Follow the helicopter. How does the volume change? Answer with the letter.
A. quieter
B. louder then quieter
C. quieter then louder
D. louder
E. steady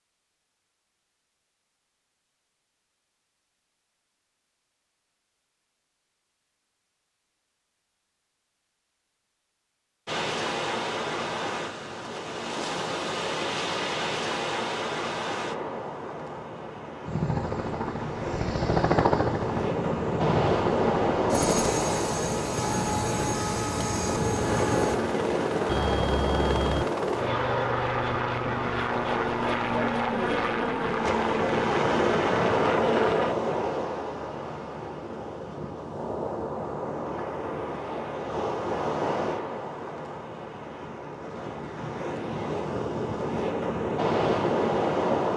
E.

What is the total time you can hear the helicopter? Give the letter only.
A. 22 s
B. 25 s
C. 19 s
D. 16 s
D.